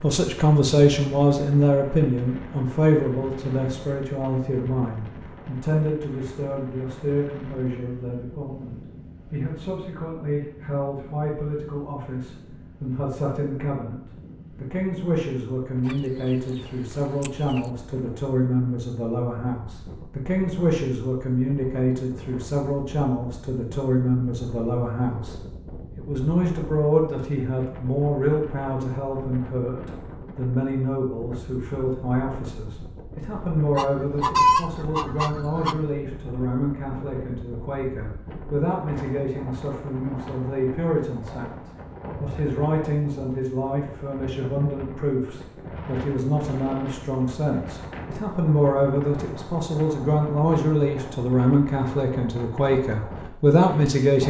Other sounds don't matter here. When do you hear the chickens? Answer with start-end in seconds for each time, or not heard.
15.8-16.4, 17.2-17.6, 33.8-35.8.